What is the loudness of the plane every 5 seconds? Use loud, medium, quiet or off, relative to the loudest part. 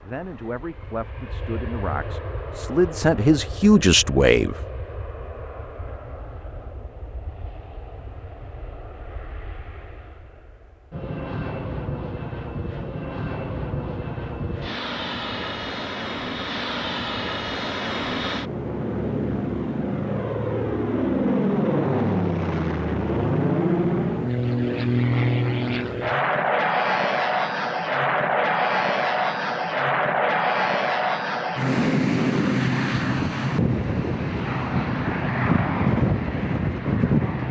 quiet, quiet, medium, medium, loud, loud, loud, loud.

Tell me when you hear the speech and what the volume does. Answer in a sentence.
The speech can be heard from 0.0 to 4.5 s, getting louder.